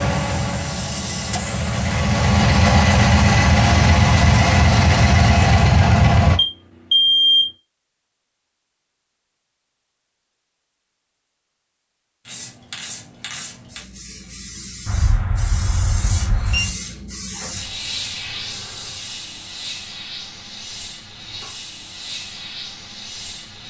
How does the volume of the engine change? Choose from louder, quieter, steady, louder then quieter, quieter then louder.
louder.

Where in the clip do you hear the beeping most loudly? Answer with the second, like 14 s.
7 s.